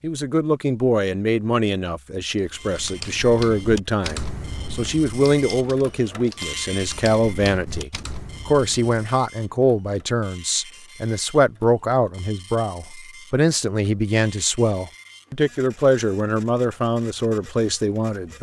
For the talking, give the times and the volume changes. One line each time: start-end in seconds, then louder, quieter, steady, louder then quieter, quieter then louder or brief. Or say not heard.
0.0-18.3 steady.